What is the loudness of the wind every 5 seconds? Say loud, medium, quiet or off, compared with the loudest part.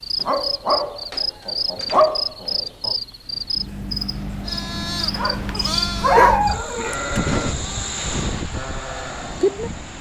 medium, loud.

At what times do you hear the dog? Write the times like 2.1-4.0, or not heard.
0.2-3.0, 5.2-6.9.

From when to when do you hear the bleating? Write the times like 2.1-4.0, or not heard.
4.5-9.5.